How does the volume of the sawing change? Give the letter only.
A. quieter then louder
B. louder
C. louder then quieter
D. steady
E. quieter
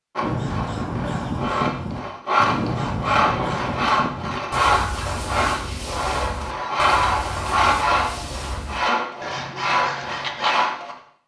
D.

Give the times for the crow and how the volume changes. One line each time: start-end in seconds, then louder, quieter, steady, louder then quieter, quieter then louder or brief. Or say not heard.
0.2-10.7 quieter.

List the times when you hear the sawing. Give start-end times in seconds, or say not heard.
0.1-10.9.